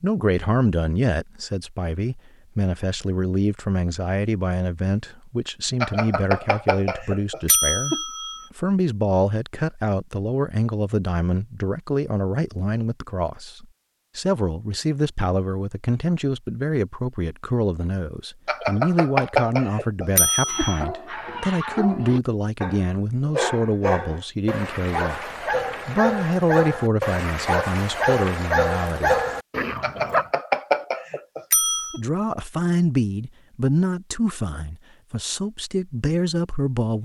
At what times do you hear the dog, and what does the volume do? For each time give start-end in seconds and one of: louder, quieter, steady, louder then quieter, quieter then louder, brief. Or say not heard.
20.4-30.2 louder.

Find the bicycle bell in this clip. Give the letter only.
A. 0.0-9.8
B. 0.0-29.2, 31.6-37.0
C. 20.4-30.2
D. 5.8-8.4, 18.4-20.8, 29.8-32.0
D.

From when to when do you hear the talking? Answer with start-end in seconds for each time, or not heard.
0.0-29.2, 31.6-37.0.